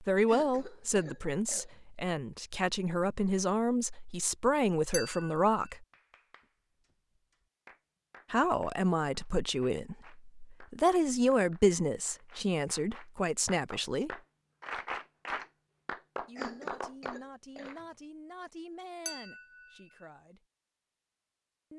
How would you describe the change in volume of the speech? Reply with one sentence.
The volume of the speech goes down.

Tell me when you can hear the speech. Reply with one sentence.
The speech can be heard from 0.0 to 5.8 s, from 8.3 to 14.2 s and from 16.2 to 20.4 s.